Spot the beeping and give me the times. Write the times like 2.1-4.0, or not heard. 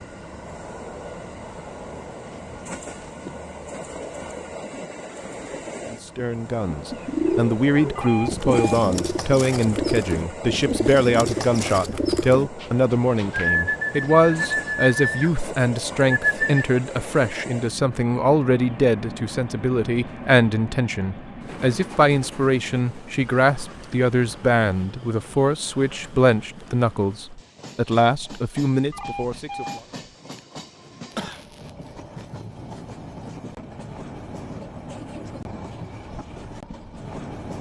7.9-8.8, 28.9-29.9.